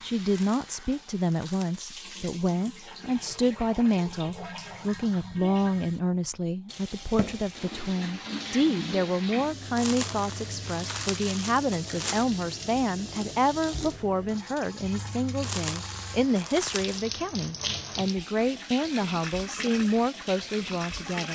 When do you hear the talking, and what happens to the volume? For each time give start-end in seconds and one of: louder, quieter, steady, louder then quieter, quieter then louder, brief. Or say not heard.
0.0-21.2 steady.